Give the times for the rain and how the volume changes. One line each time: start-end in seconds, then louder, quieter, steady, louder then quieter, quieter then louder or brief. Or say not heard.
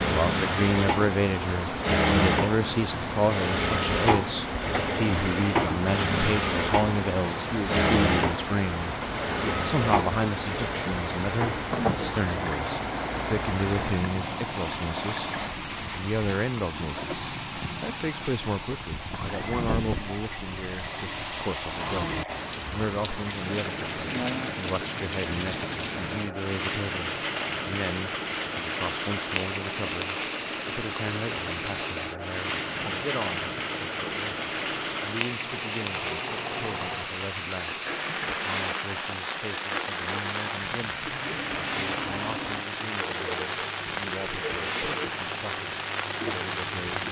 0.0-47.0 steady.